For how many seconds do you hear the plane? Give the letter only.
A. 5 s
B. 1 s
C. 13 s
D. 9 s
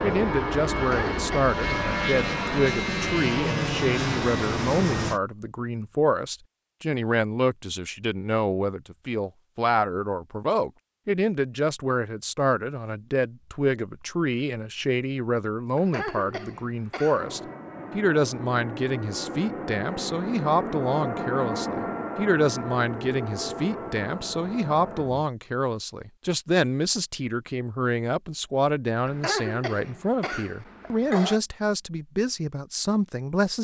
C.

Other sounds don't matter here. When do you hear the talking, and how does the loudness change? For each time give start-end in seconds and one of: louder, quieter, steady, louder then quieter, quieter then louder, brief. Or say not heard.
0.0-33.5 steady.